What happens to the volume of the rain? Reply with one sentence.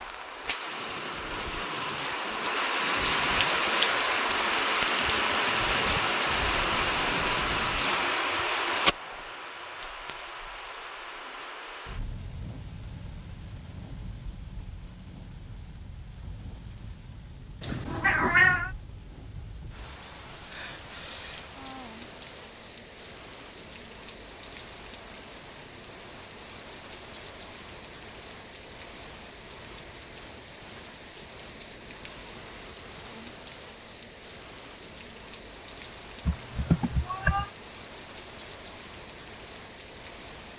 The volume of the rain goes down.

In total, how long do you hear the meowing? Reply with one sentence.
The meowing can be heard for 2 seconds in total.